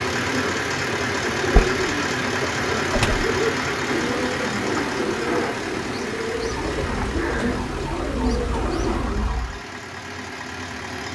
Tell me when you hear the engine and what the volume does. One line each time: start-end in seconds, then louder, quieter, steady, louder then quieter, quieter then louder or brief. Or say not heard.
0.0-11.1 quieter.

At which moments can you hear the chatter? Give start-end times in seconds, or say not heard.
not heard.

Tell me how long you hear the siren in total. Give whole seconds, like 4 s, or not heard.
3 s.